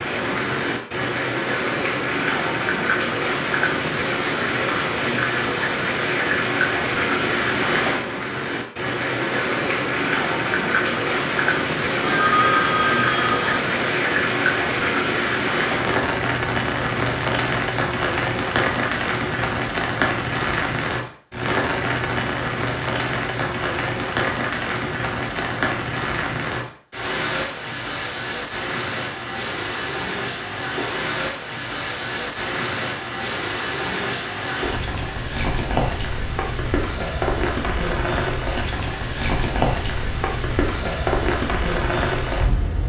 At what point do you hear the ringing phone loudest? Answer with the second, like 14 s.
12 s.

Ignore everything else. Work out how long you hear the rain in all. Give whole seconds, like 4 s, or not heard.
43 s.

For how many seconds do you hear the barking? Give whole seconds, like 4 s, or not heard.
not heard.